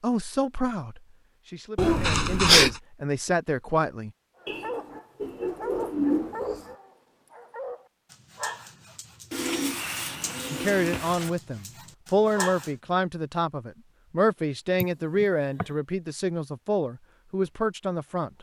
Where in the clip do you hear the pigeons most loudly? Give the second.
6 s.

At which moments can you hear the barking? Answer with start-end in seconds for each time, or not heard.
4.4-12.8.